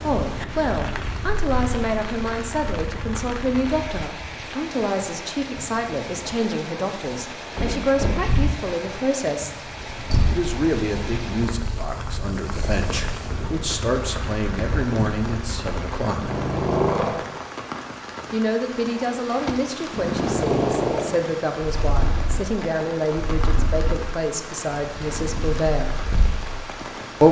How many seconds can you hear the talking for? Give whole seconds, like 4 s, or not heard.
23 s.